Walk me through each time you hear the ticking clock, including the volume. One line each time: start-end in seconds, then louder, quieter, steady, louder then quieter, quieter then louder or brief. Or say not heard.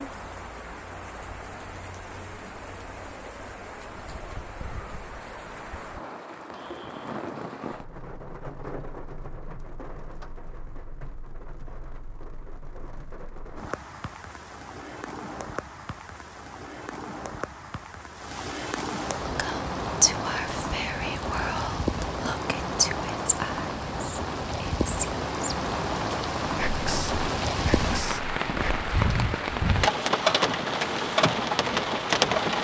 not heard.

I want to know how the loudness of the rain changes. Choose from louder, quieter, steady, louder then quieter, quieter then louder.
louder.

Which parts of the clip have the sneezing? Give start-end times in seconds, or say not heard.
not heard.